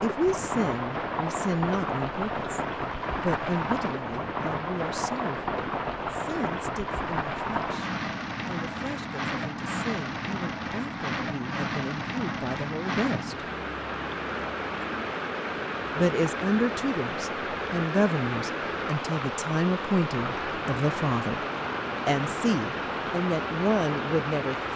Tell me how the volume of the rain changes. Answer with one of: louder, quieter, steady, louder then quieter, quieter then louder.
steady.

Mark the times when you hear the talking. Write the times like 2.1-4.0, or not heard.
0.0-13.4, 15.9-21.4, 22.1-24.7.